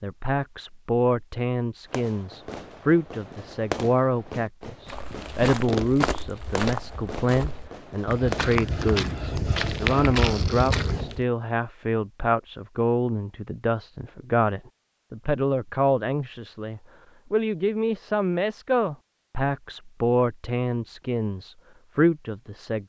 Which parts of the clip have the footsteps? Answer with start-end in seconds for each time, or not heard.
4.8-11.2.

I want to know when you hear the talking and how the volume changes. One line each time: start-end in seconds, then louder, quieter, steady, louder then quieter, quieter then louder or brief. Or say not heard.
0.0-22.8 steady.